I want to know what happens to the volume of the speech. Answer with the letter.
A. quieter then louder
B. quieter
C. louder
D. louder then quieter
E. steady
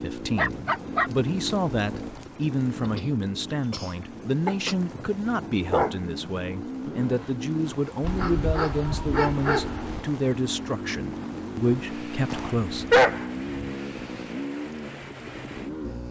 E.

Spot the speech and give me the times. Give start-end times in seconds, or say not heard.
0.0-12.8.